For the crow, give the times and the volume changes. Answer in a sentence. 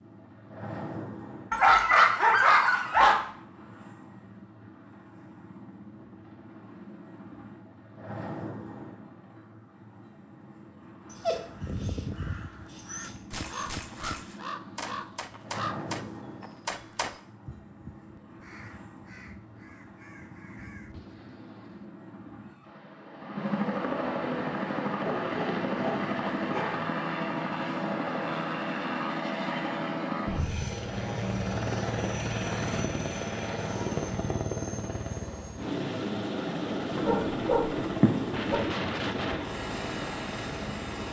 The crow can be heard from 11.3 to 21.9 s, getting quieter.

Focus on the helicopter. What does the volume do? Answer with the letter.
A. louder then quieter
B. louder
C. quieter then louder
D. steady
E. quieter
B.